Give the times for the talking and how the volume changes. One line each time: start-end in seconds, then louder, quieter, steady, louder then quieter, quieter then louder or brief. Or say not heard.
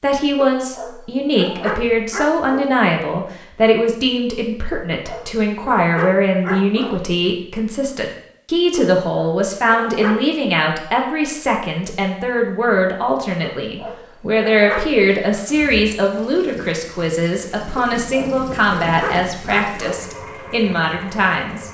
0.0-21.6 steady.